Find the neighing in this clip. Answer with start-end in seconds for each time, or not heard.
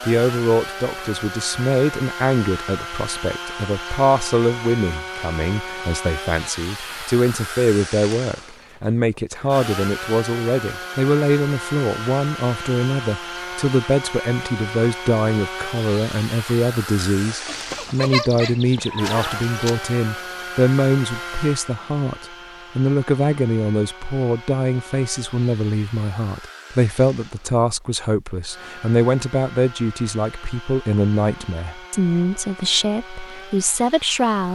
17.4-19.9.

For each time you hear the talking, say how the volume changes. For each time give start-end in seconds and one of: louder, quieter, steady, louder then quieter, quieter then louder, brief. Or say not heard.
0.1-34.4 steady.